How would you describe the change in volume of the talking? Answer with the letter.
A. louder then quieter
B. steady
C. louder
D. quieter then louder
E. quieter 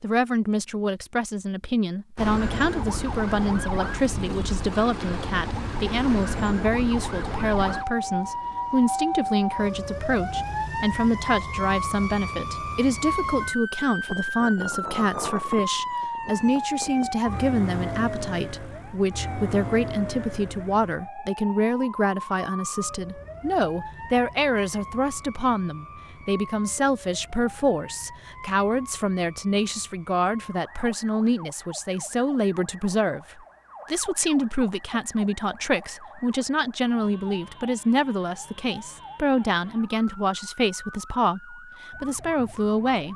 B.